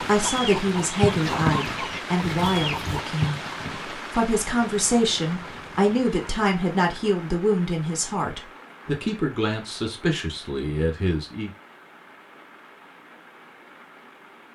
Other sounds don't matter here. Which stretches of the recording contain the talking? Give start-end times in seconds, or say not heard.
0.0-11.5.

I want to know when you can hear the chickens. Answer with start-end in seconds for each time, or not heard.
0.0-6.5.